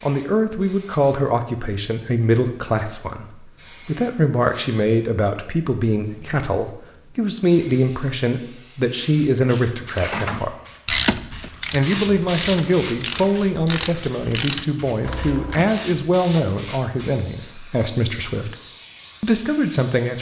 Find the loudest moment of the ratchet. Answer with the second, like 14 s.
11 s.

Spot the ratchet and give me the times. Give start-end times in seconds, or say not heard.
9.8-15.8.